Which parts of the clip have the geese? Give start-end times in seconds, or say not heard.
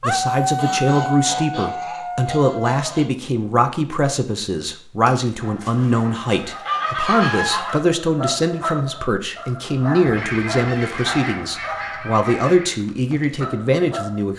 0.6-3.1, 5.0-7.8, 10.1-12.8.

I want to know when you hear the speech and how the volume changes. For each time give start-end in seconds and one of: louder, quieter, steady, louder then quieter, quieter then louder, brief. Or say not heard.
0.0-14.3 steady.